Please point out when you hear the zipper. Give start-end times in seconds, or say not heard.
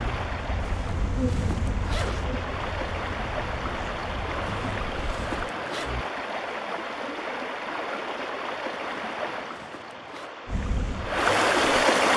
0.6-2.3, 4.7-6.0, 9.1-10.3.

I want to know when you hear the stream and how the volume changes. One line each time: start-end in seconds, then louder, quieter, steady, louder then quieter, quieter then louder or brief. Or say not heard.
0.0-12.1 louder.